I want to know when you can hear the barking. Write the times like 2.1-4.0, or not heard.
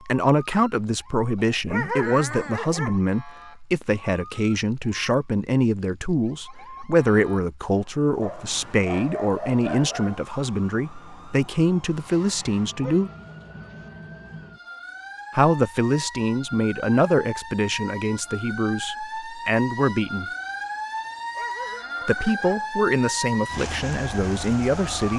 1.4-3.0, 8.2-10.2, 12.7-13.9, 21.1-22.6.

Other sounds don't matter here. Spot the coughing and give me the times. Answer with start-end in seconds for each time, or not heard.
not heard.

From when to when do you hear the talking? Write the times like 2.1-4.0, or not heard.
0.1-13.1, 15.3-20.2, 22.1-25.1.